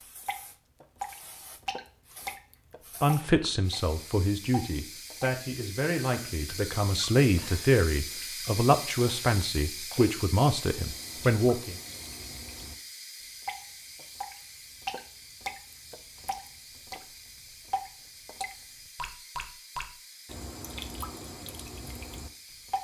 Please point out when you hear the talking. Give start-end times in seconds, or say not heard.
3.0-11.8.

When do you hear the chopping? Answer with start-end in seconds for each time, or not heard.
not heard.